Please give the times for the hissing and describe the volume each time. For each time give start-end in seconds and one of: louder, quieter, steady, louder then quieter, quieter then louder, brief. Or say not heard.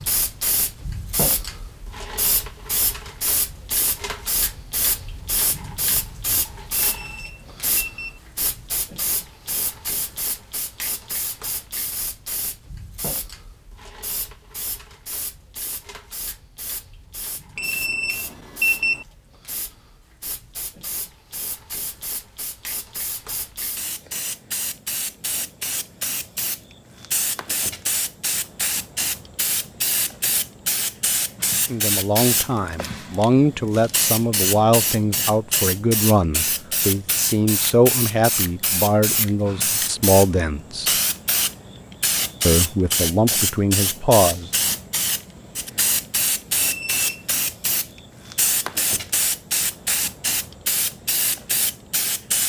0.0-52.4 quieter then louder.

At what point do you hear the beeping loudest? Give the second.
19 s.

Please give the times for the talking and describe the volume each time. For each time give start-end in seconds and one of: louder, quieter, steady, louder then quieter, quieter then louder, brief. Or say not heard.
31.6-40.9 steady
42.5-44.5 brief.